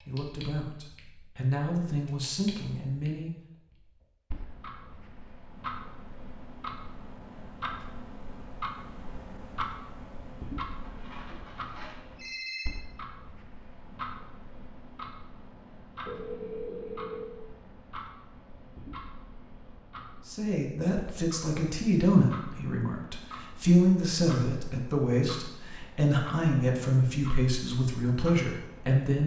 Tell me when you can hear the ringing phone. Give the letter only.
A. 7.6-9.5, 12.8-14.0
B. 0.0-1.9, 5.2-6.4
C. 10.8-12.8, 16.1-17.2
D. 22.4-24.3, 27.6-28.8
C.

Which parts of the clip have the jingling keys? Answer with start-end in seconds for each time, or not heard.
not heard.